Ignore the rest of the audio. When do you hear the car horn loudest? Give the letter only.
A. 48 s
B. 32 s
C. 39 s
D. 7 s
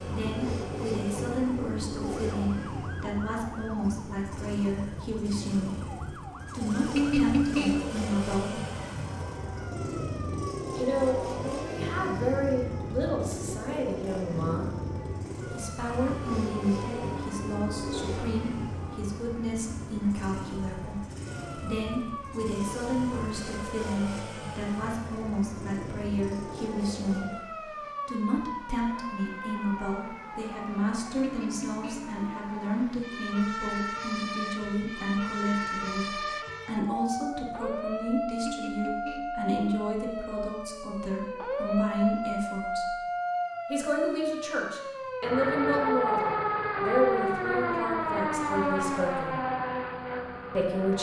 D.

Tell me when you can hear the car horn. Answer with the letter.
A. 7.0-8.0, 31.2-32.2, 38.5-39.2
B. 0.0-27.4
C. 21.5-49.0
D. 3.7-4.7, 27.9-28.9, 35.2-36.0
A.